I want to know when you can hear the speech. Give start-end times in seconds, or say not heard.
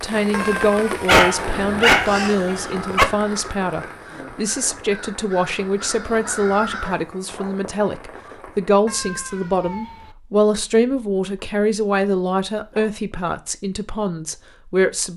0.0-15.1.